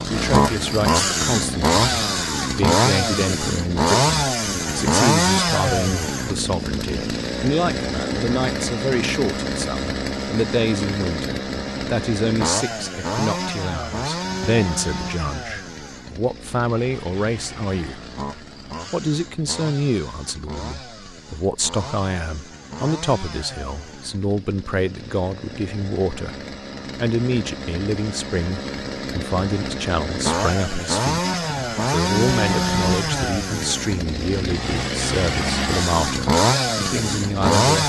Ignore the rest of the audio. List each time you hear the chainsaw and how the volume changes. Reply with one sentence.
The chainsaw can be heard from 0.0 to 37.8 s, getting quieter then louder.